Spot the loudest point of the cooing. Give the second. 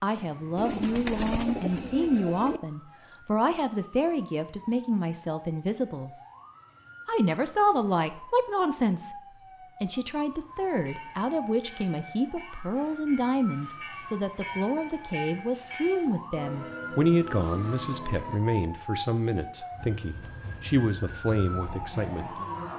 1 s.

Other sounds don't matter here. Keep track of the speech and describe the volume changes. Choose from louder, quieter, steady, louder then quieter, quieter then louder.
steady.